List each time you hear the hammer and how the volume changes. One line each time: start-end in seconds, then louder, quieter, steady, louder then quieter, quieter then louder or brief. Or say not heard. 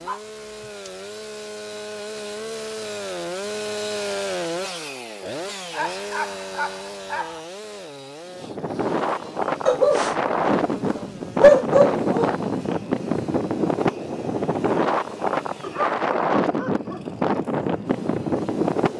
not heard.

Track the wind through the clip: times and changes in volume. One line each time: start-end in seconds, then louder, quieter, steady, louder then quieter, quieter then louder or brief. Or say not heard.
8.2-18.9 steady.